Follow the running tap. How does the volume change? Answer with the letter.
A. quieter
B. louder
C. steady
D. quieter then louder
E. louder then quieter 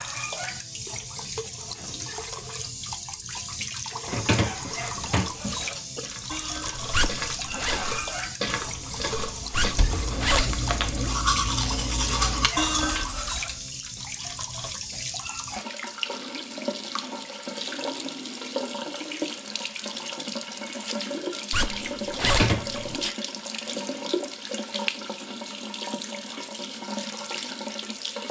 C.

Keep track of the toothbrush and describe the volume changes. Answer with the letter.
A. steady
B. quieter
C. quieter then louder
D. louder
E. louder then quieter
D.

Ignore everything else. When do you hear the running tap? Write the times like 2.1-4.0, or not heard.
0.0-28.2.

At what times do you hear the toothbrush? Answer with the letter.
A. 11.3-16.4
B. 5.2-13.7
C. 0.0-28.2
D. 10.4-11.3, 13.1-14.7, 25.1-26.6
B.